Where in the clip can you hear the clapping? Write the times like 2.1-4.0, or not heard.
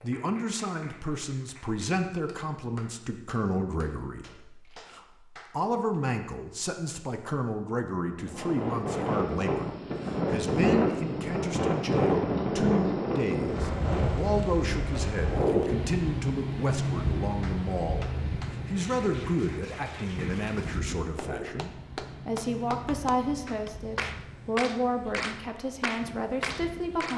0.0-6.0, 17.4-27.1.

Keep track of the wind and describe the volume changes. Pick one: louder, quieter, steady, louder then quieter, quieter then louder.
quieter.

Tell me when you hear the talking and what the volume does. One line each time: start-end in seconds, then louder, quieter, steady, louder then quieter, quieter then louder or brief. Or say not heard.
0.0-27.1 steady.